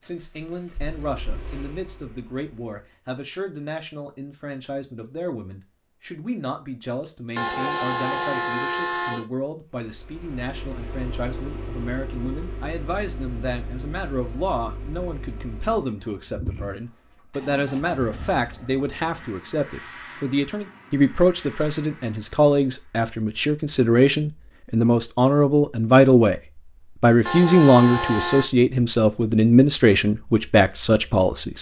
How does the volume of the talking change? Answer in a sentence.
The volume of the talking goes up.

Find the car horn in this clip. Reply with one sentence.
You can hear the car horn from 7.3 to 9.2 s and from 27.2 to 28.5 s.